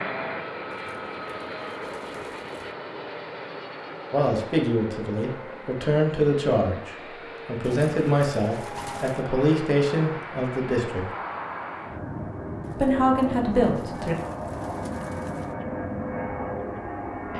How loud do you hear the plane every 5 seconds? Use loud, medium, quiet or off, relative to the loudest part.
loud, medium, loud, loud.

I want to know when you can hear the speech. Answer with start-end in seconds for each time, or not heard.
4.1-11.1, 12.8-14.2.